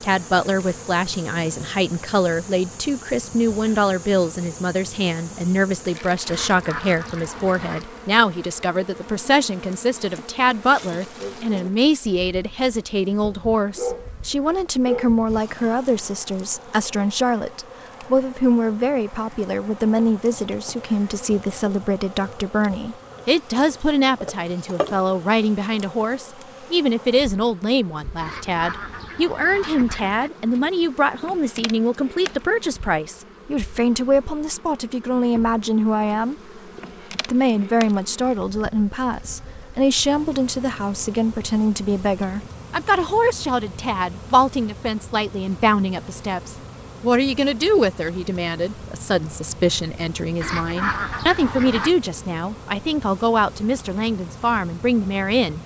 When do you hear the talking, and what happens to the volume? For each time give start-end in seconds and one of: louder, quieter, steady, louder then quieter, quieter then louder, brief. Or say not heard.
0.0-36.4 steady
37.2-55.6 steady.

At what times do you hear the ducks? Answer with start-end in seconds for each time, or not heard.
6.2-7.8, 28.2-30.3, 50.4-52.0.